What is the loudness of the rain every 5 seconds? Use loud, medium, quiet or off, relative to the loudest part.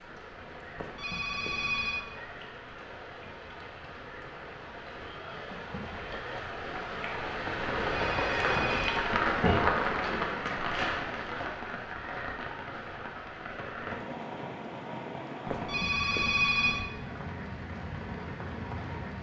quiet, loud, medium, medium.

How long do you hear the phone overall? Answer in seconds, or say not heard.
4 s.